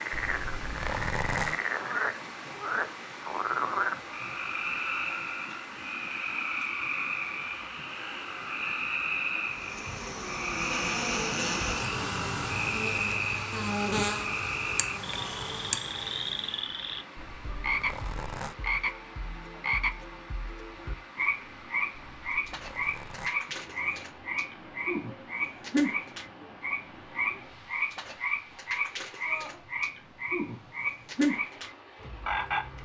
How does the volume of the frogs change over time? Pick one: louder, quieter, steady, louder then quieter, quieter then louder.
steady.